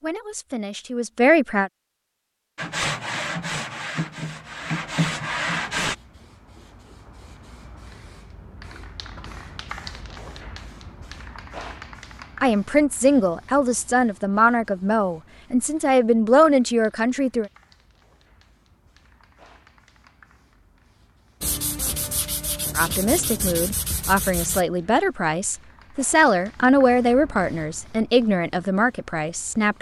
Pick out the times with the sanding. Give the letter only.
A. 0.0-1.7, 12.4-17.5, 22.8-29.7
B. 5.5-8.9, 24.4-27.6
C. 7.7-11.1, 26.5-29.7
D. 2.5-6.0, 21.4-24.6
D.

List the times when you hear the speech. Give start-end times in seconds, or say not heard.
0.0-1.7, 12.4-17.5, 22.8-29.7.